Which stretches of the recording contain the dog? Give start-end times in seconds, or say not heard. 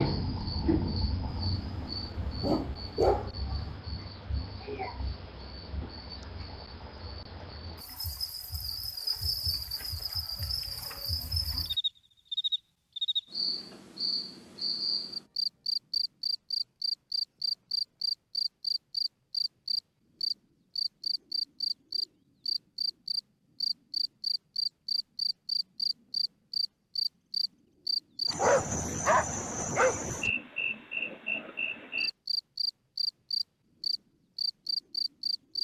1.2-3.8, 28.4-30.3.